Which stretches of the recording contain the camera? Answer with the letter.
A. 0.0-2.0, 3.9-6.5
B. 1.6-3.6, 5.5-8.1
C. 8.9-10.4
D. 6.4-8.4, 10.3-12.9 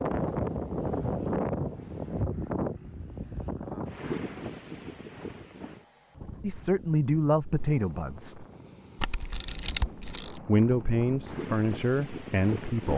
C.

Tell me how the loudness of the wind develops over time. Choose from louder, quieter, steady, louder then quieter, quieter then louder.
quieter then louder.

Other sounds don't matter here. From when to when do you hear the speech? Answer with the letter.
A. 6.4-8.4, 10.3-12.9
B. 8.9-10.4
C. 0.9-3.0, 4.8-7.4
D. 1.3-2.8
A.